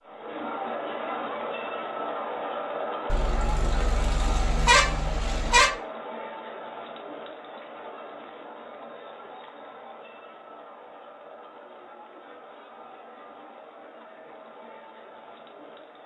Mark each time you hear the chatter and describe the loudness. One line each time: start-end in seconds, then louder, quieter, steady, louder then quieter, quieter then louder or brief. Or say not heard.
0.0-16.0 quieter.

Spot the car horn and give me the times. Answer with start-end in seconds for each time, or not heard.
3.1-5.7.